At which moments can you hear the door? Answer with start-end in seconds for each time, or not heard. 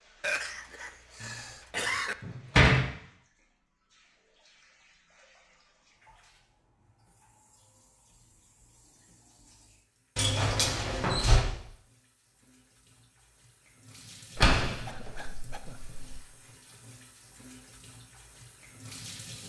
1.2-2.9, 10.2-11.4, 14.3-16.1.